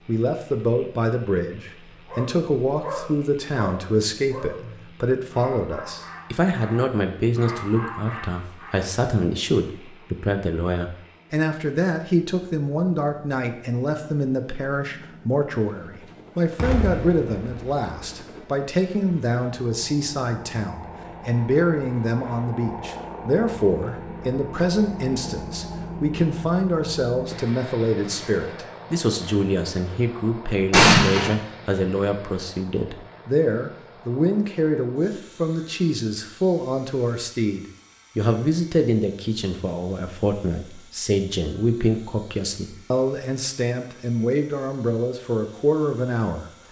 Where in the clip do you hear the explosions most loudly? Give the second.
31 s.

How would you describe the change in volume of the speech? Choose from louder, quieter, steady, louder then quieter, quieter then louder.
steady.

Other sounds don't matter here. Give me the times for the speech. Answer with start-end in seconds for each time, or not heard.
0.1-46.5.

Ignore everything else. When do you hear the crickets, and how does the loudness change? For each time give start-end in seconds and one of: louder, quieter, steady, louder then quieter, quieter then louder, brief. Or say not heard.
not heard.